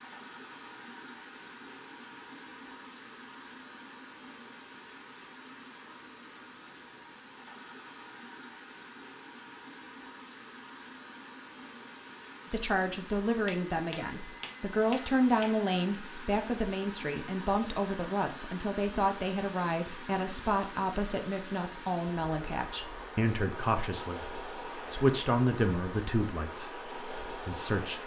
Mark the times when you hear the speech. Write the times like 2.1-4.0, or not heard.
12.5-28.0.